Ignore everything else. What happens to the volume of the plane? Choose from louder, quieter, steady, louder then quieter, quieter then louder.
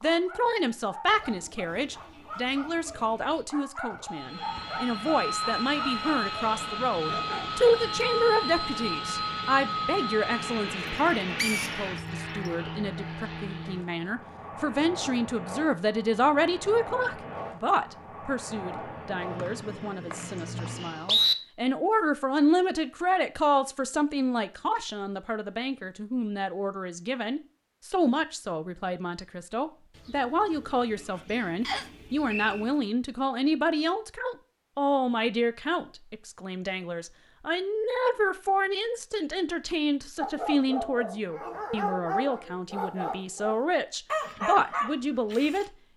quieter.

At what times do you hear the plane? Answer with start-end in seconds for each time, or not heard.
4.0-21.3.